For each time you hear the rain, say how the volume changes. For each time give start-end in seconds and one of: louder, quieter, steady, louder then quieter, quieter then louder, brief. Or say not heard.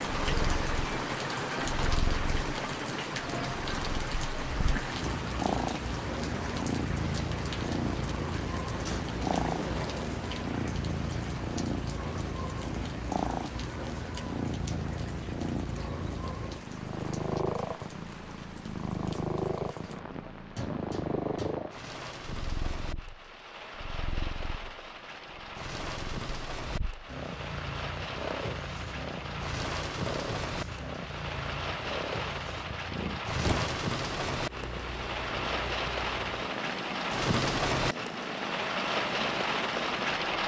0.0-40.4 quieter then louder.